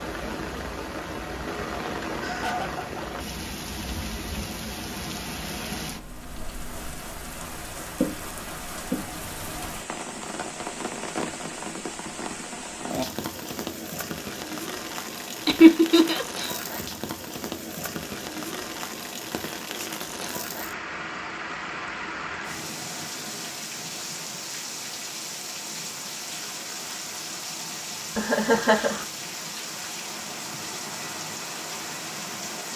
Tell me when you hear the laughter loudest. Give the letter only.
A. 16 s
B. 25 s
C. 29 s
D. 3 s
A.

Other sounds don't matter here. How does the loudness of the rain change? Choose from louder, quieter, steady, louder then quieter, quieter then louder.
steady.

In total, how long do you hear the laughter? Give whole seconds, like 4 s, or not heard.
3 s.